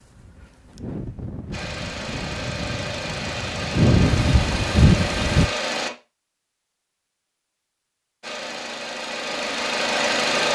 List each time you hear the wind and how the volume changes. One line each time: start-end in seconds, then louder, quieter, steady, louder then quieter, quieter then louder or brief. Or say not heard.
0.0-5.5 louder.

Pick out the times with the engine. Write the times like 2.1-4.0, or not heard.
1.5-5.9, 8.2-10.4.